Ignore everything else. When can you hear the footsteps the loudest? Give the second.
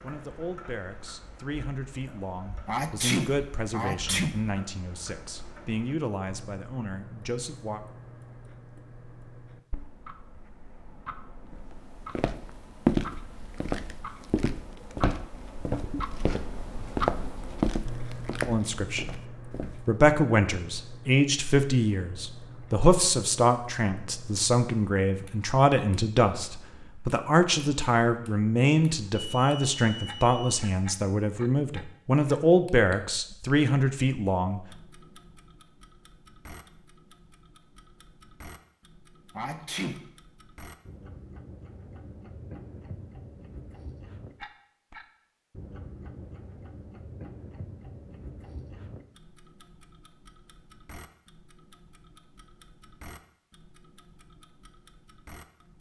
13 s.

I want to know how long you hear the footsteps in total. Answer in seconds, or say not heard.
8 s.